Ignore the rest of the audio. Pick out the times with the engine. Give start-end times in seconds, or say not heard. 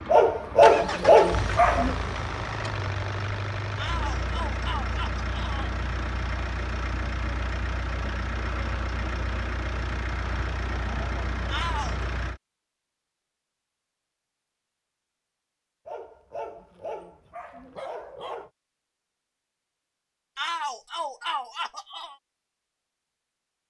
0.0-12.4.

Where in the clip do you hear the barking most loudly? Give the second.
1 s.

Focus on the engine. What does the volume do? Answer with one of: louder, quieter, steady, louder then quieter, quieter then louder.
steady.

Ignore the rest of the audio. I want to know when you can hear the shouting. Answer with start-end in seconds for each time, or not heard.
3.8-5.8, 11.5-12.1, 20.4-22.1.